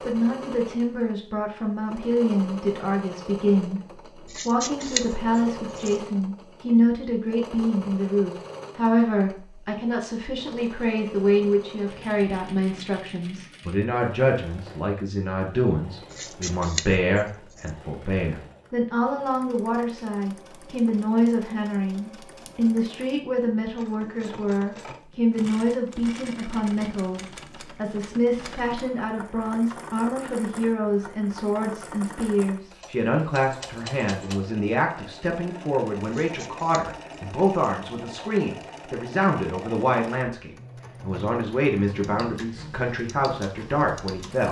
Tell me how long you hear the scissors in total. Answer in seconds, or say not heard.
5 s.